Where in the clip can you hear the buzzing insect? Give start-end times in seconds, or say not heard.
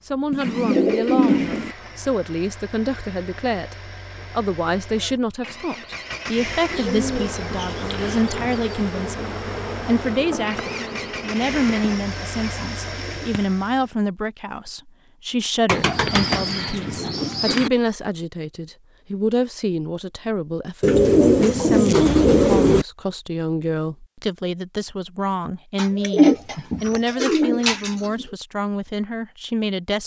6.8-13.0.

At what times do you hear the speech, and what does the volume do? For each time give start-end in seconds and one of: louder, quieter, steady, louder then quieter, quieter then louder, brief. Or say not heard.
0.1-30.0 steady.